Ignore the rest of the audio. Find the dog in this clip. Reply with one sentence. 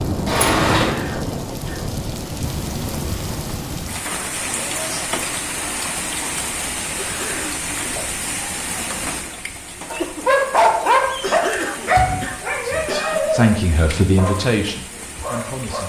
The dog can be heard from 9.9 to 15.8 s.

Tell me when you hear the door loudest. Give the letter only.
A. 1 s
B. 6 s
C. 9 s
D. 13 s
A.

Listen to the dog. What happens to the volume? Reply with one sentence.
The loudness of the dog goes down.